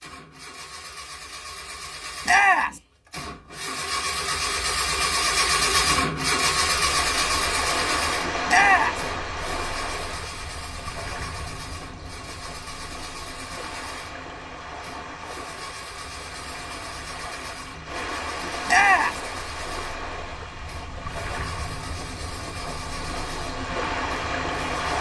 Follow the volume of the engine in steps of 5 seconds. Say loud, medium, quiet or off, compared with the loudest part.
medium, loud, quiet, quiet, quiet.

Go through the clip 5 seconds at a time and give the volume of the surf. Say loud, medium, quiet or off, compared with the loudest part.
off, loud, medium, medium, loud.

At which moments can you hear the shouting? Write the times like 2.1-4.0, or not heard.
2.2-2.8, 8.4-9.0, 18.6-19.2.